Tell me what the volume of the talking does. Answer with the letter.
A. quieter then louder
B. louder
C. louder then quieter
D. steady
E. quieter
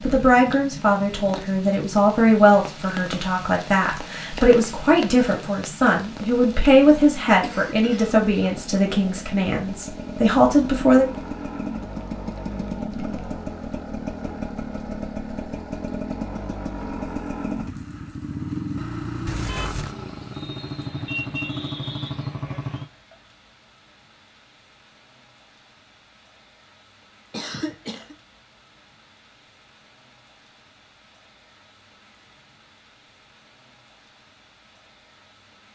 D.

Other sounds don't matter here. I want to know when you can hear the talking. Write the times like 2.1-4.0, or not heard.
0.0-11.1.